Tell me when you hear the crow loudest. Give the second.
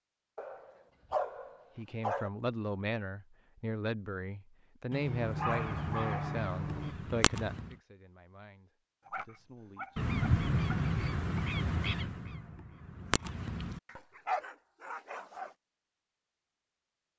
10 s.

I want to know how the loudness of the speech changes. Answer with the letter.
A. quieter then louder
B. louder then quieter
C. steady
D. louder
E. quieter
E.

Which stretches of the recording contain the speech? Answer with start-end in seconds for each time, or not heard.
1.8-10.1.